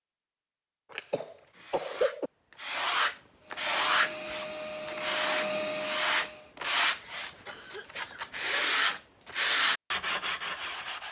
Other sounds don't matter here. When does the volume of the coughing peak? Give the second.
2 s.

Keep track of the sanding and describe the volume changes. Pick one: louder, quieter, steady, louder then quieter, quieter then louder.
steady.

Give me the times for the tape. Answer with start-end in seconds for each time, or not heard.
not heard.